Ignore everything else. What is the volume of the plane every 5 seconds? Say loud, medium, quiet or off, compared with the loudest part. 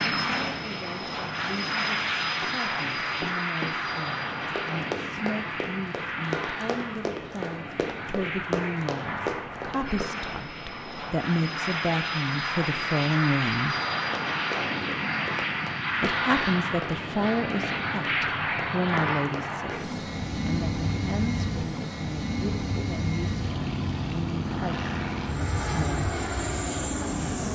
loud, medium, loud, loud, loud, loud.